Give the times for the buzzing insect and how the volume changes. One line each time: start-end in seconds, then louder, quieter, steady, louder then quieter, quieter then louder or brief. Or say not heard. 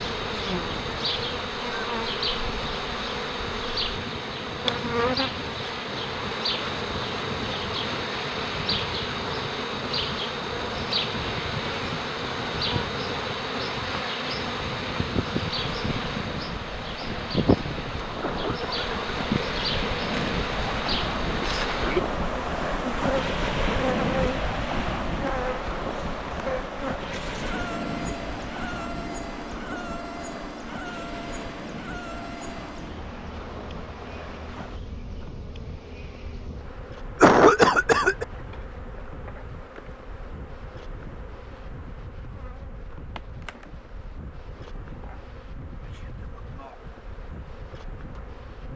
0.0-48.7 quieter.